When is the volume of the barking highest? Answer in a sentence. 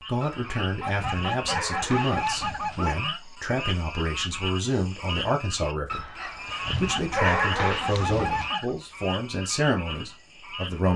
The volume of the barking peaks at 7 seconds.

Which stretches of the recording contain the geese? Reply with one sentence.
You can hear the geese from 0.8 to 3.2 s and from 6.8 to 8.8 s.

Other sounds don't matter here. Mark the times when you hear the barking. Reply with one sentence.
The barking can be heard from 0.2 to 2.9 s and from 5.8 to 8.6 s.